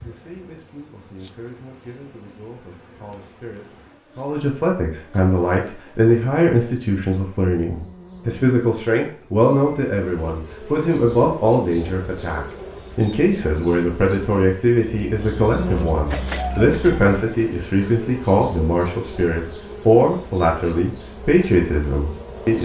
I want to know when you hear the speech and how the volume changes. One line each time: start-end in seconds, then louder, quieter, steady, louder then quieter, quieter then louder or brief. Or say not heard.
0.0-22.6 louder.